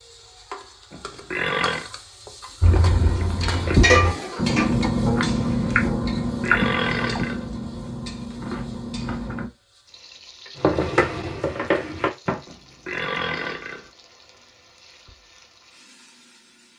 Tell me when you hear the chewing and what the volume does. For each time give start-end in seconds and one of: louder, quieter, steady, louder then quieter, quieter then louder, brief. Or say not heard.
2.6-9.5 quieter.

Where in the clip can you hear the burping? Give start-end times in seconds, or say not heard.
0.9-1.9, 6.2-7.5, 12.4-13.9.